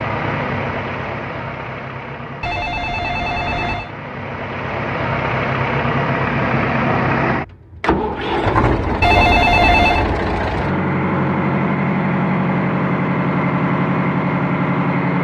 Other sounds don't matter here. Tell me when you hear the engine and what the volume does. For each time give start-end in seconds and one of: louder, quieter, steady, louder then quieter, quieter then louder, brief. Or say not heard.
0.0-15.1 louder.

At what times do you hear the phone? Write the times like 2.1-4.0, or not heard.
2.4-4.0, 9.0-10.1.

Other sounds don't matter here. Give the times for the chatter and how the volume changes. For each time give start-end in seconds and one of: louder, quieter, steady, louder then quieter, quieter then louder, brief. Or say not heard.
not heard.